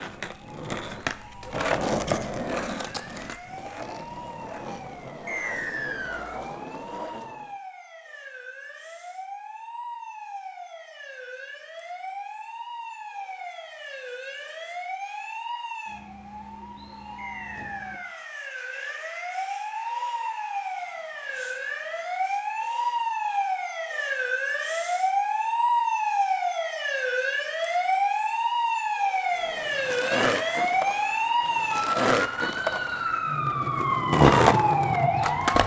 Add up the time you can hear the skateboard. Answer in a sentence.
The skateboard can be heard for 14 seconds in total.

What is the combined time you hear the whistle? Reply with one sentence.
You can hear the whistle for 3 seconds altogether.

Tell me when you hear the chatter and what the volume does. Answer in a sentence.
The chatter can't be heard in this clip.